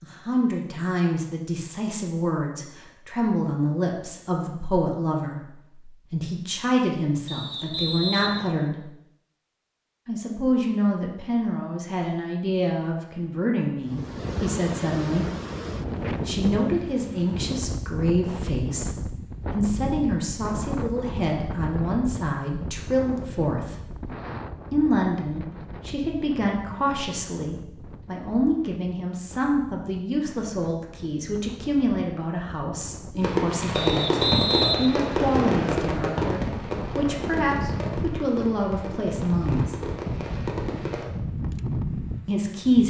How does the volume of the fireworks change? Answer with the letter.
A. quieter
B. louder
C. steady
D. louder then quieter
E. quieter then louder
A.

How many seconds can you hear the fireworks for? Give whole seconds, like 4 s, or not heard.
8 s.